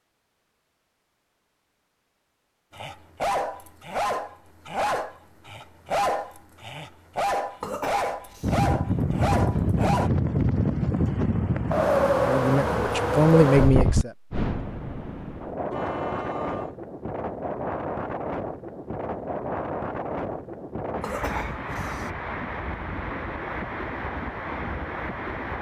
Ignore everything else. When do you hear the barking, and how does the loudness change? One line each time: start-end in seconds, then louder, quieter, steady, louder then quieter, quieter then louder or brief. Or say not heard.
2.7-10.1 steady.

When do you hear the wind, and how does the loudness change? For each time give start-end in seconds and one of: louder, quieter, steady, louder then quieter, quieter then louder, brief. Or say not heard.
8.4-25.5 quieter.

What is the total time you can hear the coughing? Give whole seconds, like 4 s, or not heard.
2 s.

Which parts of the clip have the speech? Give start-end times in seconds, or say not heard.
12.2-14.1.